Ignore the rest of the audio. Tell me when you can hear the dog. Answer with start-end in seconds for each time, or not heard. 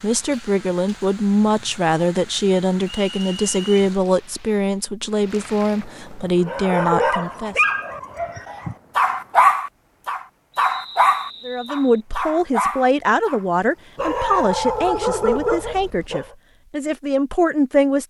6.5-16.2.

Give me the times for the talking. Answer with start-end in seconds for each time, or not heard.
0.0-7.6, 11.4-18.0.